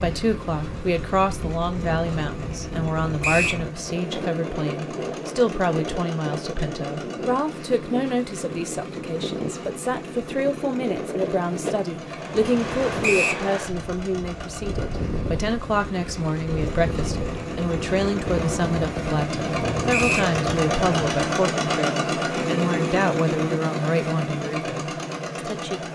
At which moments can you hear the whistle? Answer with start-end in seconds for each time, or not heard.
3.2-3.6, 13.0-13.4, 19.9-20.3.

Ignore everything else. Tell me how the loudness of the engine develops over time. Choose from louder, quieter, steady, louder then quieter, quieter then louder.
louder.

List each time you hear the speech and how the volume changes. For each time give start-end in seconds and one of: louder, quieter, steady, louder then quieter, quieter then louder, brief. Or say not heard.
0.0-25.9 steady.